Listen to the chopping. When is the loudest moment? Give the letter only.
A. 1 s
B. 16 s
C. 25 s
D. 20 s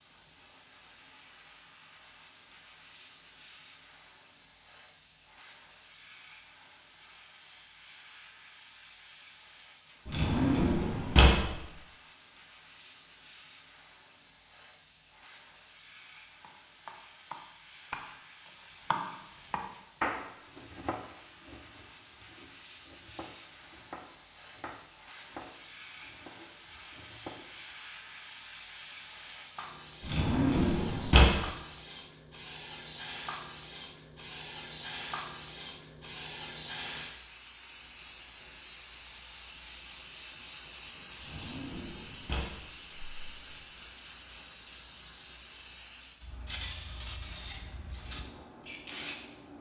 D.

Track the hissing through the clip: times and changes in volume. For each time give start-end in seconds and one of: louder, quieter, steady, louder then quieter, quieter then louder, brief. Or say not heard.
0.0-49.5 louder.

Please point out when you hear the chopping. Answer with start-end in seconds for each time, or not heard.
16.4-27.5.